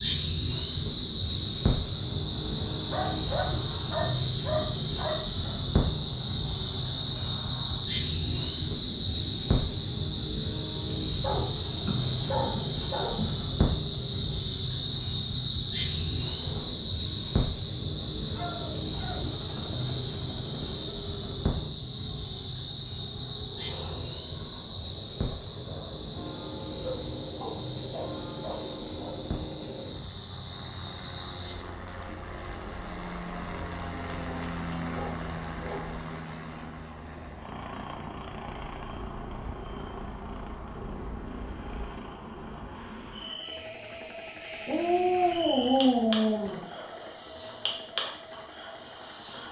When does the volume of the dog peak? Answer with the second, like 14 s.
46 s.